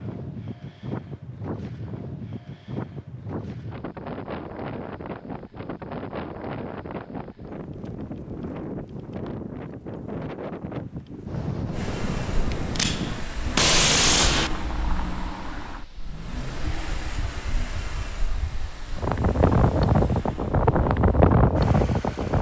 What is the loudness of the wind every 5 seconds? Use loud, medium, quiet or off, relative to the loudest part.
quiet, quiet, medium, medium, loud.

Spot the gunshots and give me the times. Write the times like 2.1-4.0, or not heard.
12.5-14.5.